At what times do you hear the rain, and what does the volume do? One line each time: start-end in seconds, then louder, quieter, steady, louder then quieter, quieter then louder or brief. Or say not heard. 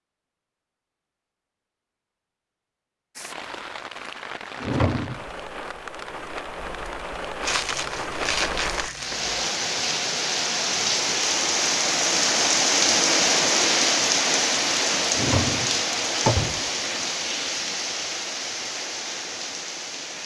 3.1-20.2 louder then quieter.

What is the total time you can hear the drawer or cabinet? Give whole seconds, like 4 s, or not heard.
2 s.